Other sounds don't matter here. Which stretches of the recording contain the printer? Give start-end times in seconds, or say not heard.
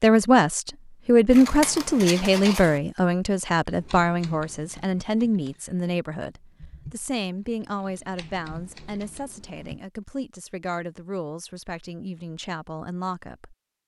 not heard.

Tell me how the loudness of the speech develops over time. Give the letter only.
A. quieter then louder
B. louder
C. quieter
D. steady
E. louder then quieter
C.